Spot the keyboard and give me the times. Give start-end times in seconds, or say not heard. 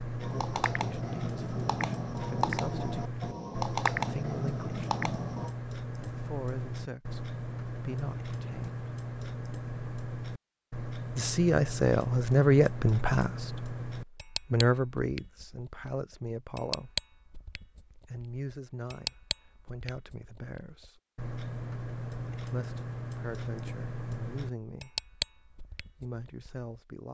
0.2-5.5.